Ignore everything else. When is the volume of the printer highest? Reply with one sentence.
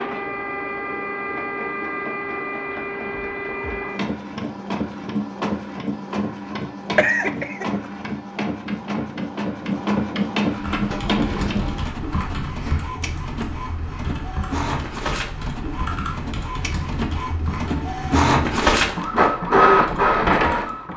The loudest moment of the printer is at 20 seconds.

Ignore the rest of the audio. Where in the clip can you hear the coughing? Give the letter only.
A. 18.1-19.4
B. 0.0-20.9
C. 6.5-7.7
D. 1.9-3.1
C.